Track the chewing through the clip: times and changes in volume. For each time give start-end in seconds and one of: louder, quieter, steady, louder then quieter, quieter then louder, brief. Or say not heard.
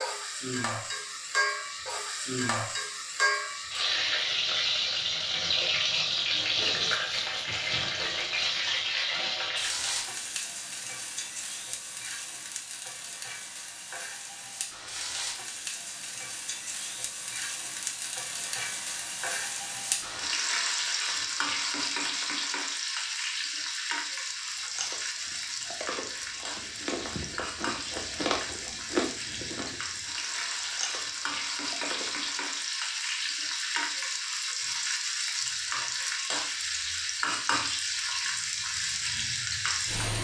24.2-32.2 louder then quieter.